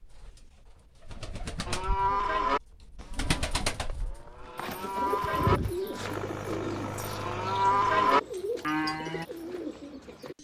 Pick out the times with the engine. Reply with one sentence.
The engine can be heard from 6.0 to 8.1 s.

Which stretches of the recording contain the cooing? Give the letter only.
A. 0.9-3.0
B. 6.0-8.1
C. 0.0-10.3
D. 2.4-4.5
C.